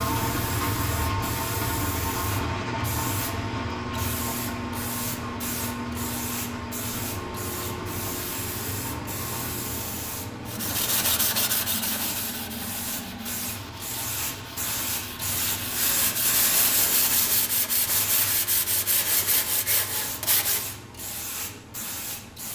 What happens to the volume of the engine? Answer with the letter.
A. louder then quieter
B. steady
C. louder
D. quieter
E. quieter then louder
D.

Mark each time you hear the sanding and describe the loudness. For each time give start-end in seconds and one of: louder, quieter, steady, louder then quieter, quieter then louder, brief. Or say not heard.
10.4-20.6 quieter then louder.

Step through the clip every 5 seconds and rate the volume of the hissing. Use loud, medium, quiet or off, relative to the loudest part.
medium, medium, medium, loud, medium.